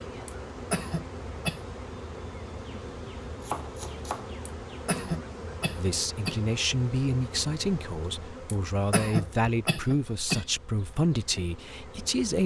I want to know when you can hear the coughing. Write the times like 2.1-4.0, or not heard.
0.2-1.6, 4.5-6.4, 8.4-10.4.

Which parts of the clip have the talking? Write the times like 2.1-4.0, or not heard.
5.8-12.4.